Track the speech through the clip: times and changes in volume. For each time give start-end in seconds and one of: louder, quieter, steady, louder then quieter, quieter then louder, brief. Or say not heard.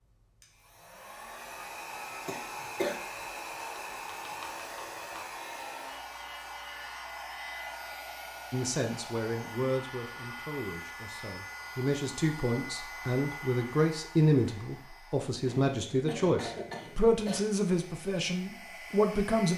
8.5-19.5 louder.